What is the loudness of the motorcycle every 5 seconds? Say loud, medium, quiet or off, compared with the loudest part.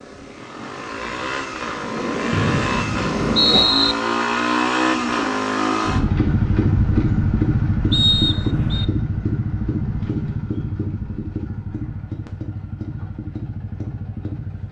loud, loud, medium.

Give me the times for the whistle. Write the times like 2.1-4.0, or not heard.
2.3-4.0, 7.9-8.8.